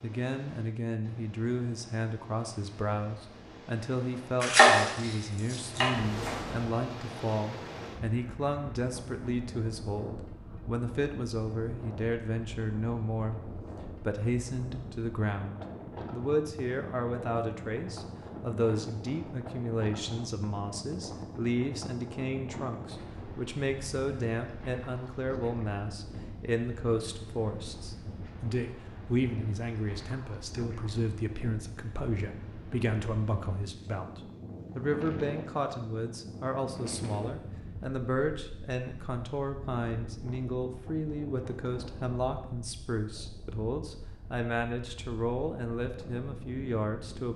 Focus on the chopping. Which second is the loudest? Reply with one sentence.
The loudest moment of the chopping is at 5 seconds.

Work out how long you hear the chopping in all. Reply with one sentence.
The chopping can be heard for 2 seconds in total.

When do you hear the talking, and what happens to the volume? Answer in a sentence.
You can hear the talking from 0.0 to 47.3 s, at a steady volume.